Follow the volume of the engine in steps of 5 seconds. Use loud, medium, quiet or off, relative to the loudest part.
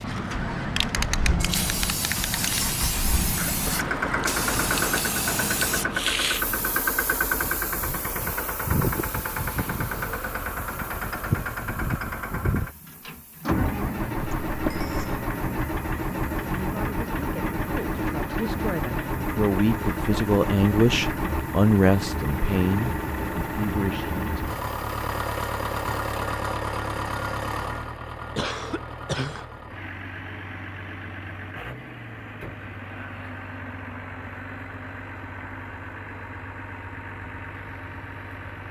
loud, loud, loud, loud, loud, loud, medium, medium.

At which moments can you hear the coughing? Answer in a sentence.
You can hear the coughing from 3.4 to 4.3 s, from 14.2 to 15.2 s and from 28.4 to 29.4 s.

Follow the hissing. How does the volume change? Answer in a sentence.
The loudness of the hissing goes down.